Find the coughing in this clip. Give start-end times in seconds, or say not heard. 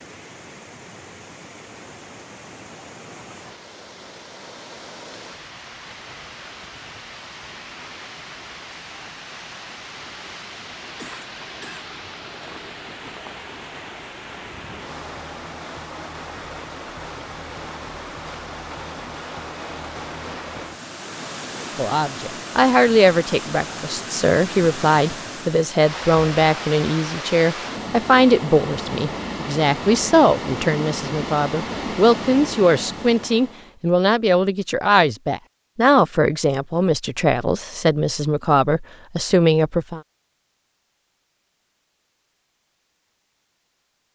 10.9-11.8.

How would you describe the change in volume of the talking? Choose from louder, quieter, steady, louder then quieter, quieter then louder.
steady.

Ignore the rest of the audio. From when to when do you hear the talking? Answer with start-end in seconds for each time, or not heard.
21.6-40.0.